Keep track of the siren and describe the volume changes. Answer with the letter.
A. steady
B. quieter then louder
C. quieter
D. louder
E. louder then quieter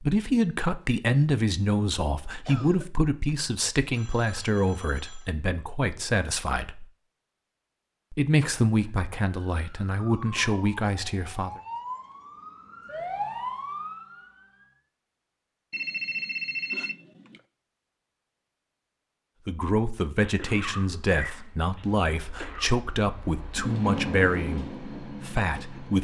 D.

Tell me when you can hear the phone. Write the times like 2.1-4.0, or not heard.
4.0-5.3, 15.7-17.4.